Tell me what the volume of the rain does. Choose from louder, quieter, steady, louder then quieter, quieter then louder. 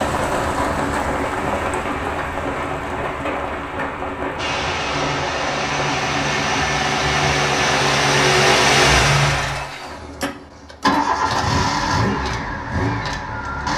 quieter.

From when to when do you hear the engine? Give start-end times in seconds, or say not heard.
4.3-13.7.